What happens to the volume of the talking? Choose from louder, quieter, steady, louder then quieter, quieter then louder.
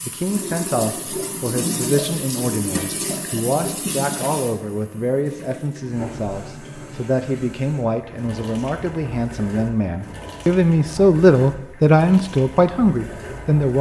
louder.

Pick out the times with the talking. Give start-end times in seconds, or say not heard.
0.1-13.7.